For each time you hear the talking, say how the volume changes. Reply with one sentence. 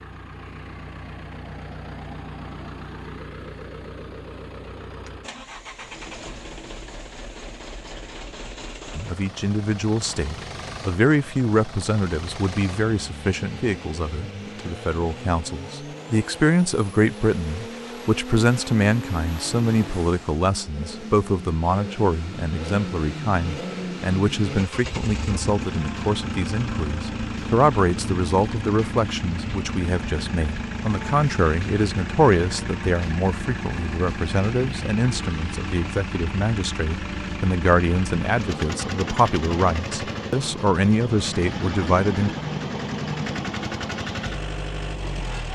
The talking can be heard from 8.9 to 42.4 s, at a steady volume.